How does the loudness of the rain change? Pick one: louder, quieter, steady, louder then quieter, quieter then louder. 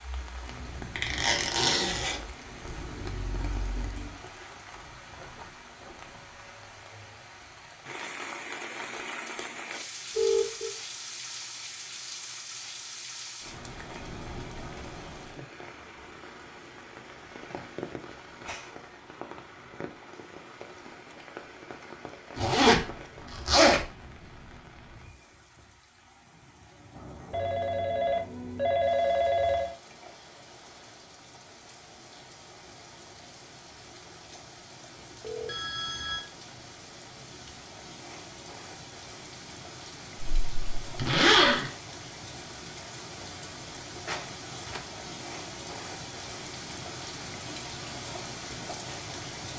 quieter then louder.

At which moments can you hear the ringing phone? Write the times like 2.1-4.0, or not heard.
10.2-10.8, 27.3-29.8, 35.2-36.2.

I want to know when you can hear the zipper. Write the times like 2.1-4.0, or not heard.
0.9-2.4, 22.4-23.8, 40.2-41.7.